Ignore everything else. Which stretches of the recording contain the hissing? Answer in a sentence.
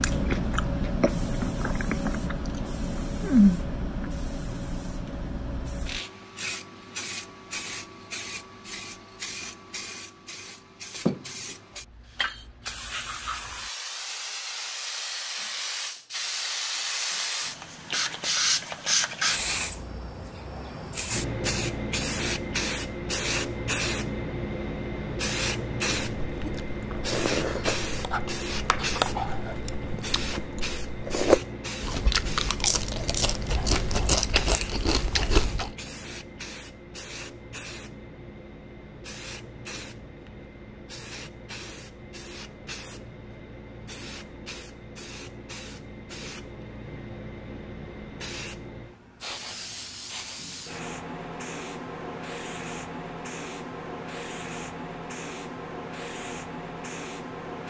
You can hear the hissing from 0.0 to 57.6 s.